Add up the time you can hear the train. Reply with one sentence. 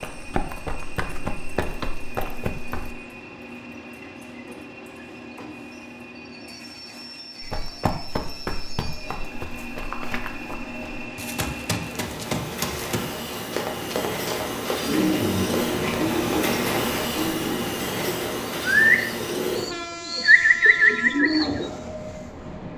The train can be heard for 23 seconds in total.